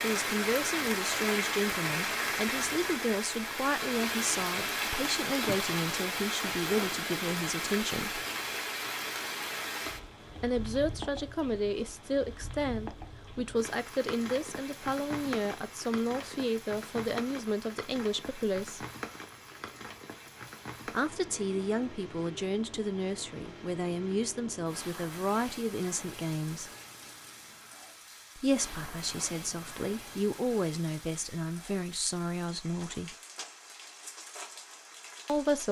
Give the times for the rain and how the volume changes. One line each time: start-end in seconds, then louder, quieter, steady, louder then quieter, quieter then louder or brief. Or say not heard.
0.0-35.6 quieter.